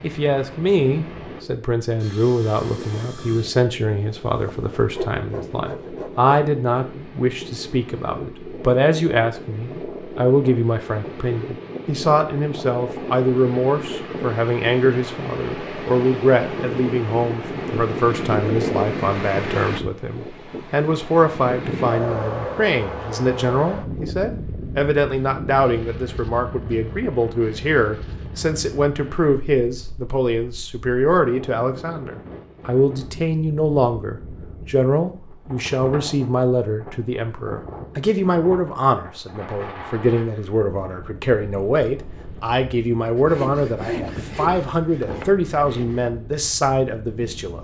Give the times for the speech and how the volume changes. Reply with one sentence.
The speech can be heard from 0.0 to 47.6 s, at a steady volume.